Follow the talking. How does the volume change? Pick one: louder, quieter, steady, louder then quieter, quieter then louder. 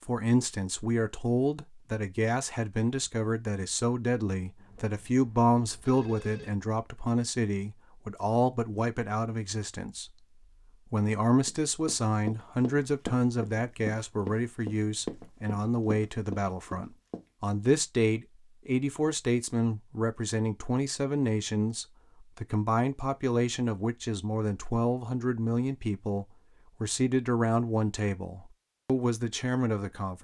steady.